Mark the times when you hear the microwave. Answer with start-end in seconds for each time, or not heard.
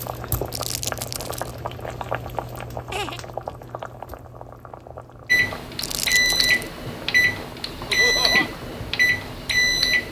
5.2-10.0.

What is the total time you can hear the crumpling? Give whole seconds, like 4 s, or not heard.
2 s.